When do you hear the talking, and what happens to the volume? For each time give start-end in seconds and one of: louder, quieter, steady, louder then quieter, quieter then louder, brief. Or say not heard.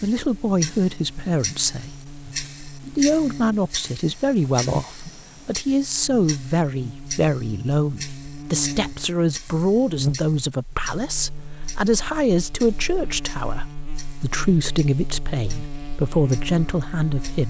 0.0-17.4 steady.